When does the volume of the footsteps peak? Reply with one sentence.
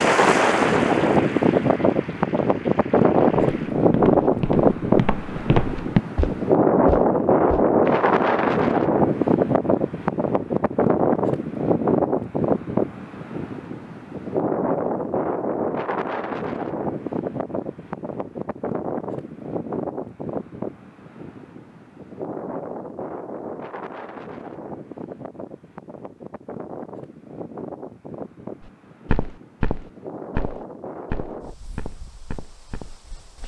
The loudest moment of the footsteps is at 6 seconds.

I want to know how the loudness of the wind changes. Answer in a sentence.
The loudness of the wind goes down.